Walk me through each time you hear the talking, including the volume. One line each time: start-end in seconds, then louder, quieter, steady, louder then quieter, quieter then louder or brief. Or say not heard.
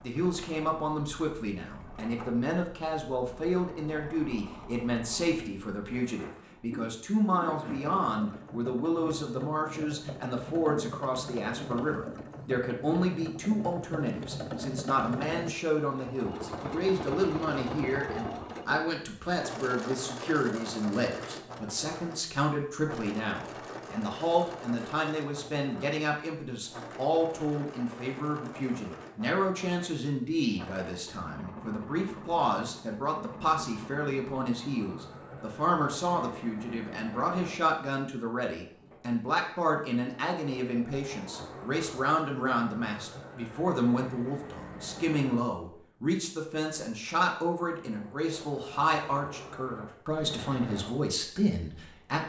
0.0-52.2 steady.